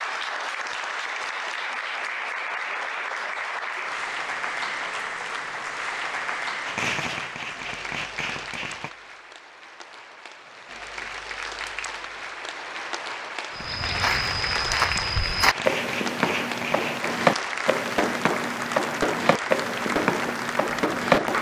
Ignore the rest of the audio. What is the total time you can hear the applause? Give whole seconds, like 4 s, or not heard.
21 s.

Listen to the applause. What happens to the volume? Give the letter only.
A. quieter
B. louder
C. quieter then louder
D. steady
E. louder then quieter
C.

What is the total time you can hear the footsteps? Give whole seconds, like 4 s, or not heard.
8 s.